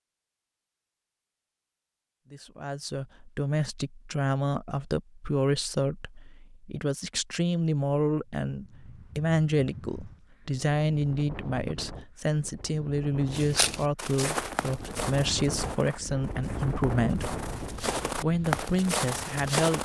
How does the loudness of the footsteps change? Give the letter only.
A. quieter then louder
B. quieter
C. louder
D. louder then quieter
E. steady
A.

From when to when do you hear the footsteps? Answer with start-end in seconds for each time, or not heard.
13.3-19.8.